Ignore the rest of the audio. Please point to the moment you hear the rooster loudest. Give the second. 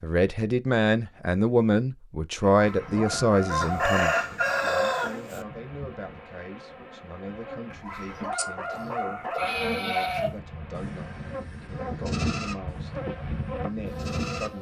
4 s.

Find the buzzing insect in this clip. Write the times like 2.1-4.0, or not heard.
2.8-7.8, 9.4-14.5.